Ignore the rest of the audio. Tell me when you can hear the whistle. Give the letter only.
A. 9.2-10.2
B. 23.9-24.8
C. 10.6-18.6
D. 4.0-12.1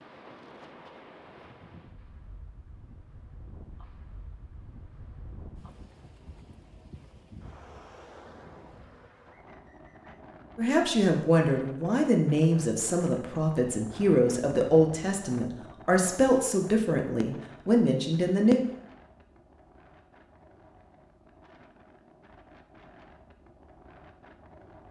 A.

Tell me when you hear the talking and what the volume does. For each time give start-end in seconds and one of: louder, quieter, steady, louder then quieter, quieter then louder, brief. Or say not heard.
10.6-18.6 steady.